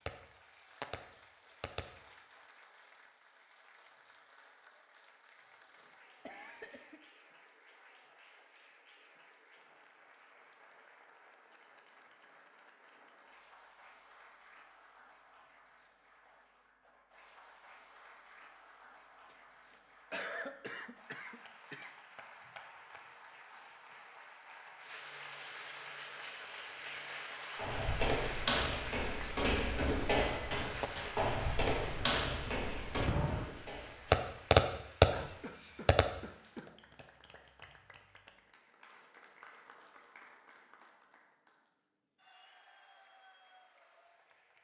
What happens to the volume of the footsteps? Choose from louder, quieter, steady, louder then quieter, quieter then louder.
quieter.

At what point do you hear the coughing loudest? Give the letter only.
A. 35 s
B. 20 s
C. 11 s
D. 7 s
B.